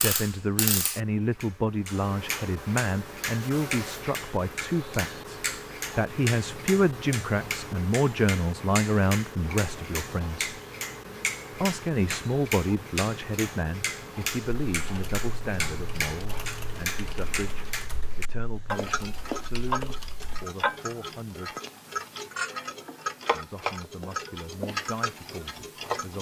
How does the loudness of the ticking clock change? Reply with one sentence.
The loudness of the ticking clock stays about the same.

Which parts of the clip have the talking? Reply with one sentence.
The talking can be heard from 0.0 to 10.5 s, from 11.6 to 21.6 s and from 23.3 to 26.1 s.